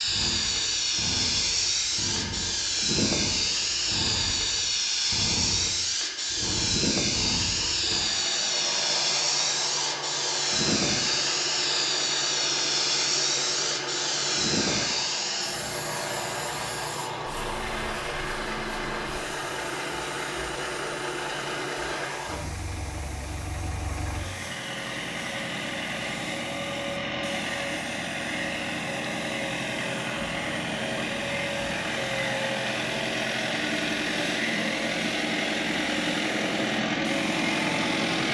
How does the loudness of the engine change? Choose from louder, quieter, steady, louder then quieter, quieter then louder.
louder.